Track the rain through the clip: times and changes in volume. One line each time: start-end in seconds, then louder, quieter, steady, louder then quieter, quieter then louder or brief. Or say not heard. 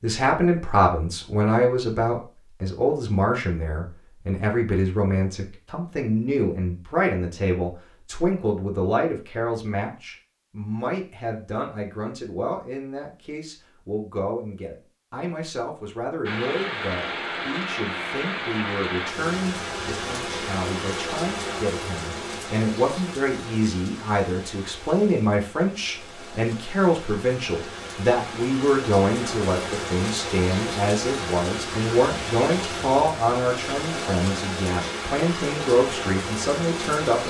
16.2-37.2 quieter then louder.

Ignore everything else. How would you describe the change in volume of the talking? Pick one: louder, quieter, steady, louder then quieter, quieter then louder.
quieter then louder.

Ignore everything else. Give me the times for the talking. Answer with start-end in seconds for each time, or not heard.
0.0-37.2.